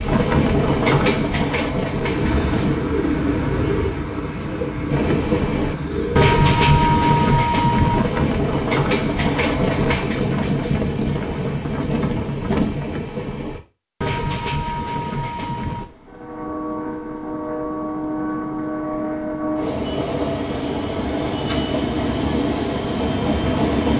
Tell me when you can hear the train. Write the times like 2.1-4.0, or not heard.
0.0-2.8, 4.9-23.9.